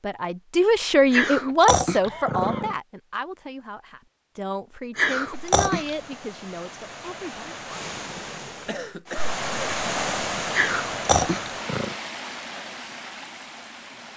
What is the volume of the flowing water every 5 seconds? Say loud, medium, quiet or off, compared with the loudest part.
off, loud, loud.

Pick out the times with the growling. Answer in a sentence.
The growling can be heard from 1.1 to 2.8 s, from 5.0 to 6.0 s and from 10.5 to 11.9 s.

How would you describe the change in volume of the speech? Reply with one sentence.
The loudness of the speech goes down.